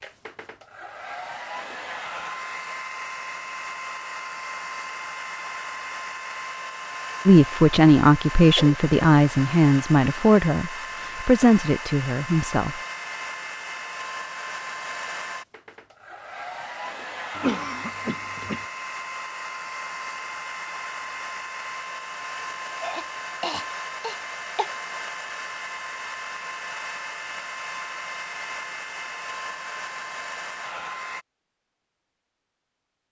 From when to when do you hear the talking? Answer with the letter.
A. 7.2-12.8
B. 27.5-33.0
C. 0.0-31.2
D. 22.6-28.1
A.